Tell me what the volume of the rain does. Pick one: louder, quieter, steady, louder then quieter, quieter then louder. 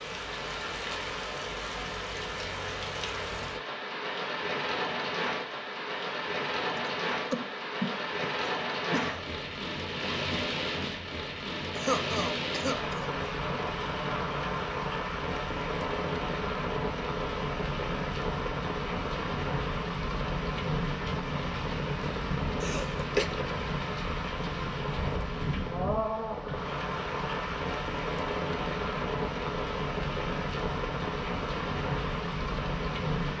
steady.